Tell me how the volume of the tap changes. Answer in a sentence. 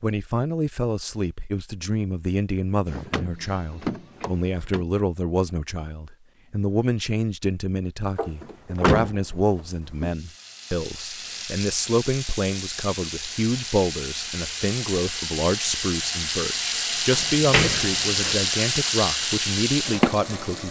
The loudness of the tap goes up.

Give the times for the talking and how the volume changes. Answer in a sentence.
The talking can be heard from 0.0 to 20.6 s, at a steady volume.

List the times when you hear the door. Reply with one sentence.
The door can be heard from 2.9 to 4.8 s, from 8.2 to 10.2 s and from 17.1 to 18.4 s.